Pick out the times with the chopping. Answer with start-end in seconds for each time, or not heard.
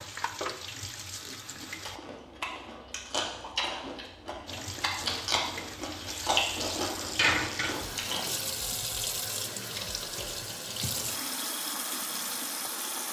not heard.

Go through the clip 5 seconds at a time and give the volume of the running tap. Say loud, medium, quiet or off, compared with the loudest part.
medium, loud, loud.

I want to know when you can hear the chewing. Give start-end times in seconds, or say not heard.
1.6-8.2.